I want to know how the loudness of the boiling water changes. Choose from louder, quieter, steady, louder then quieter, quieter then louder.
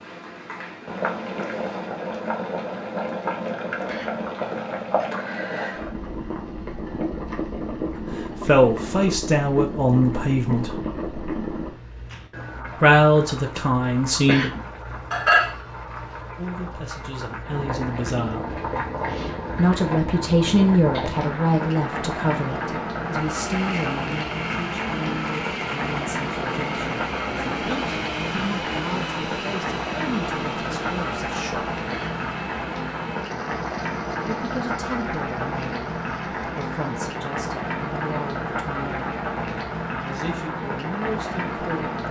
steady.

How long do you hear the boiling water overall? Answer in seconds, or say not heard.
42 s.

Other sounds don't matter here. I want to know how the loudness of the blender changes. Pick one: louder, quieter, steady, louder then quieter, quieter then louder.
quieter.